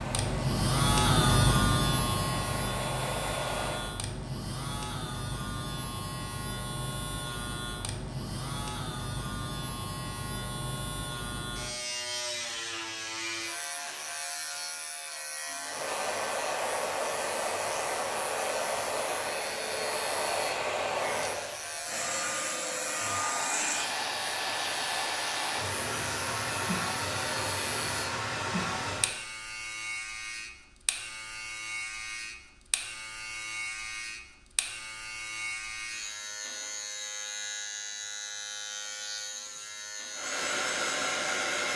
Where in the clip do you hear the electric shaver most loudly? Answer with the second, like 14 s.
1 s.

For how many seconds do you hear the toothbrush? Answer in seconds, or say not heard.
not heard.